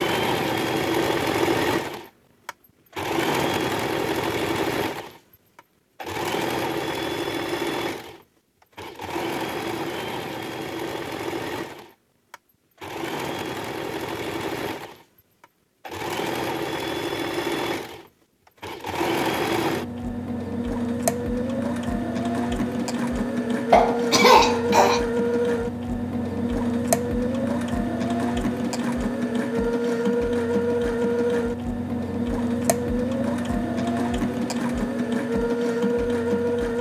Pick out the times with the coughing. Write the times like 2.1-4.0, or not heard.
23.7-25.0.